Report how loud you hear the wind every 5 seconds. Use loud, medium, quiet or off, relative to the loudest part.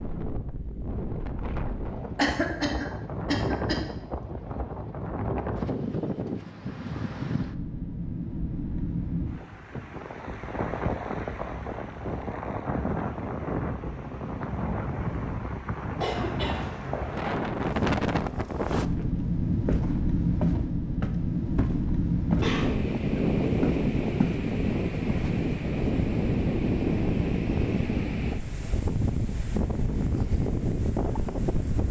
medium, medium, medium, loud, loud, loud, loud.